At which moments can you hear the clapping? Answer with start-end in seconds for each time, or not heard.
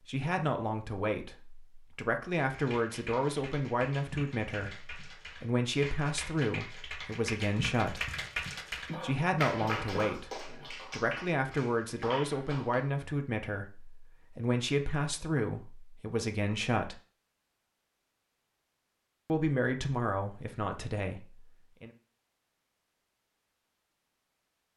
2.4-12.8.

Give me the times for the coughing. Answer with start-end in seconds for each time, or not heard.
8.8-10.8.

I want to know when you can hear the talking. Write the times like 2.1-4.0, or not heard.
0.1-8.1, 8.9-17.0, 19.2-21.9.